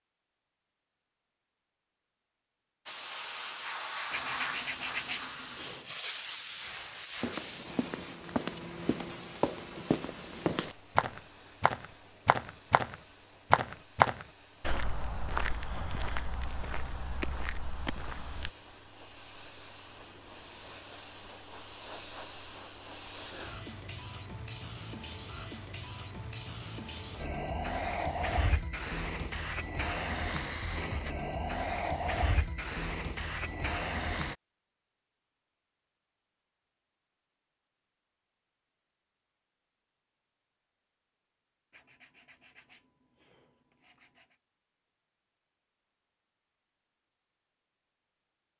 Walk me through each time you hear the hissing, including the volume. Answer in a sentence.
The hissing can be heard from 2.9 to 34.4 s, getting quieter then louder.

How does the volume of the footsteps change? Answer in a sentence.
The loudness of the footsteps goes up, then down.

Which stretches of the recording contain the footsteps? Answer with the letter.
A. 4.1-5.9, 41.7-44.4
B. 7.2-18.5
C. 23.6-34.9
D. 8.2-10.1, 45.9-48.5
B.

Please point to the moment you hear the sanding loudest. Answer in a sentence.
The loudest moment of the sanding is at 5 seconds.